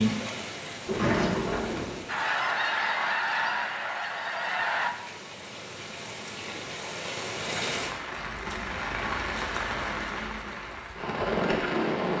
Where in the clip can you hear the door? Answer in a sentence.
The door can be heard from 0.8 to 2.0 s.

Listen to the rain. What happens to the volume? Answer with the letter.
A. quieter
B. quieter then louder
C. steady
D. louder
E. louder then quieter
B.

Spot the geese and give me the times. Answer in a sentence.
The geese can be heard from 2.0 to 5.0 s.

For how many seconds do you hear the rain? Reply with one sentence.
You can hear the rain for 12 seconds altogether.